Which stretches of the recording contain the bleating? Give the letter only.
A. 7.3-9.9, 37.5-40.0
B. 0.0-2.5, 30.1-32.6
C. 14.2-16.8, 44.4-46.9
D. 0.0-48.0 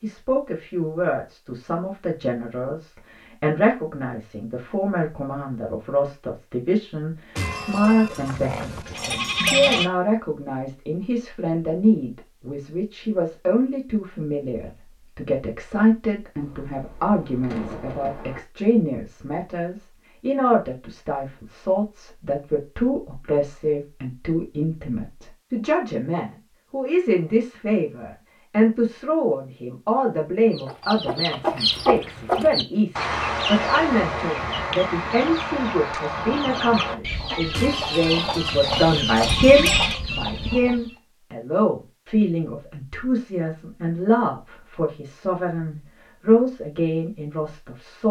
A.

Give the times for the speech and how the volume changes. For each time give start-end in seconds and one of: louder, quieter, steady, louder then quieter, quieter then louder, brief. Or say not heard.
0.0-48.0 steady.